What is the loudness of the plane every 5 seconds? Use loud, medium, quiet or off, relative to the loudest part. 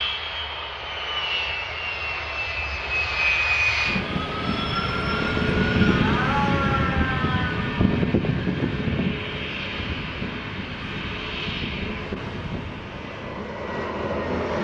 loud, loud, medium.